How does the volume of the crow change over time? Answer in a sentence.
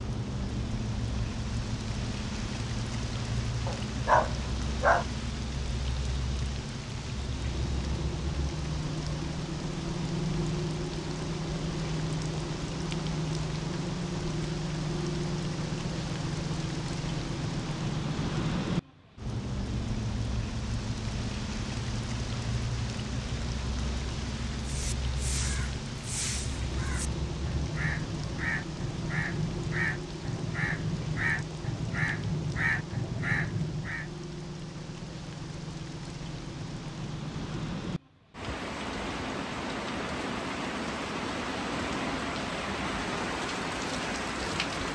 The loudness of the crow goes up.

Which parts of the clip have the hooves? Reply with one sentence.
The hooves can't be heard in this clip.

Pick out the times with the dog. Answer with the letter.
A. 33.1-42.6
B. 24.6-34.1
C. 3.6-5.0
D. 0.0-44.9
C.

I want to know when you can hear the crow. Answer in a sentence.
The crow can be heard from 24.6 to 34.1 s.